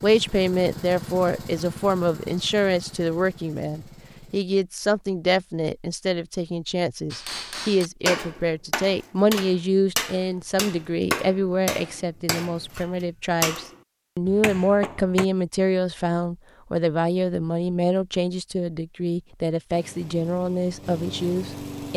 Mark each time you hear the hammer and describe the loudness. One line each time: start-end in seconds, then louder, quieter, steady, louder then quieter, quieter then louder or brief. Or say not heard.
7.1-15.2 quieter then louder.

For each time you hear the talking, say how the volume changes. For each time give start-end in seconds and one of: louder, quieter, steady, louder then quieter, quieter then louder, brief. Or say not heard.
0.0-21.9 steady.